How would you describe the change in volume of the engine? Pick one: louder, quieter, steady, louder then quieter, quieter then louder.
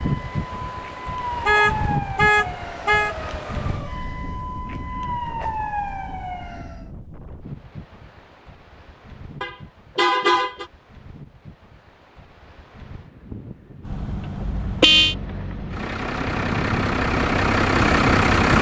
louder.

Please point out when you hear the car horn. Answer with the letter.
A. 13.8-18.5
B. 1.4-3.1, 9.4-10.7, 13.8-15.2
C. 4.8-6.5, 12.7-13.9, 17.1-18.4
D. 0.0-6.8
B.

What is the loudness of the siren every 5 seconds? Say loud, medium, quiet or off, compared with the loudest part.
loud, loud, off, off.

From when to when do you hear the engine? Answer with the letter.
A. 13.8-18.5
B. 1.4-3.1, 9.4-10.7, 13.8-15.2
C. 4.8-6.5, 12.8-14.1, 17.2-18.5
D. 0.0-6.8
A.